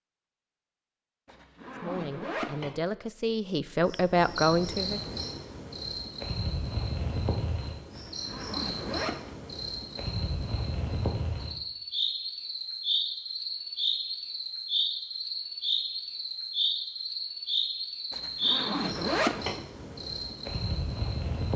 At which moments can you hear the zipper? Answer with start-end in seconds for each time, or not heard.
1.2-2.8, 8.0-9.3, 18.1-19.6.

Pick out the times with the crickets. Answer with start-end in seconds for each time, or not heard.
3.9-21.5.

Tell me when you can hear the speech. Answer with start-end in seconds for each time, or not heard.
1.8-5.0.